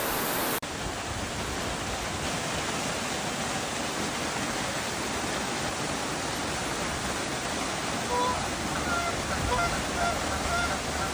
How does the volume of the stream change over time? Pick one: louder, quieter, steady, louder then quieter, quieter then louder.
steady.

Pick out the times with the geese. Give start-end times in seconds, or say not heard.
8.1-11.0.